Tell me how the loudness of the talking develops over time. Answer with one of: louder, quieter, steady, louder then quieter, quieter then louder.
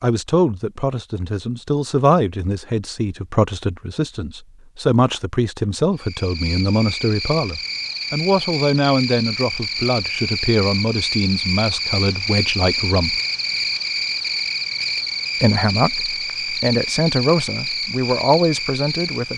steady.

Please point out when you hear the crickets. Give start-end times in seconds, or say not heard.
6.0-19.3.